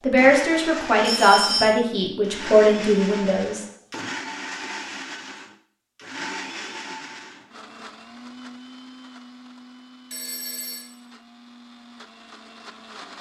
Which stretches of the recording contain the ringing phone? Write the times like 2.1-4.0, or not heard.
1.0-1.8, 10.1-10.9.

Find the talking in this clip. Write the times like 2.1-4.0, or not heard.
0.0-3.6.